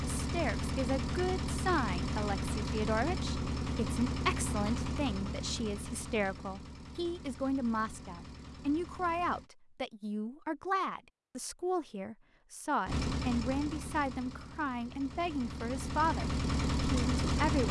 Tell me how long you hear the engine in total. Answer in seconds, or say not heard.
14 s.